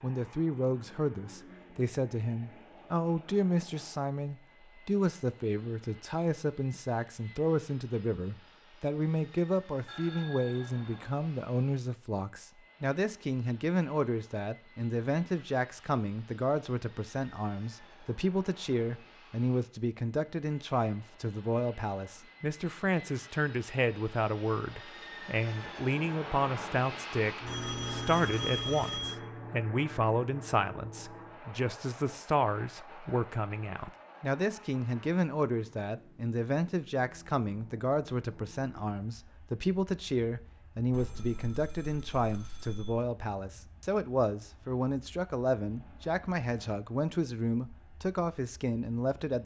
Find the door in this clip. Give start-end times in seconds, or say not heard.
not heard.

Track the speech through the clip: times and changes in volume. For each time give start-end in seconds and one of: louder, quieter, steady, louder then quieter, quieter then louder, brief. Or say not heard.
0.0-49.4 steady.